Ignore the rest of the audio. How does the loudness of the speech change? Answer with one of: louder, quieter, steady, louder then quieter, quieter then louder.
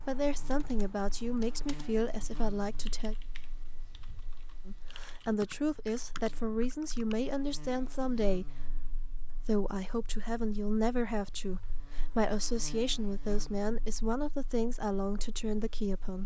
steady.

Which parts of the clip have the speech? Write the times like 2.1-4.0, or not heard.
0.1-3.1, 4.7-16.2.